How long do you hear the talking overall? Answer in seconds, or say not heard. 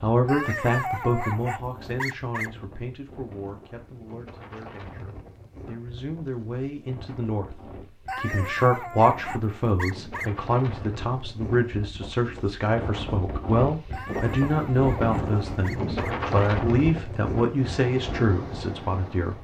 19 s.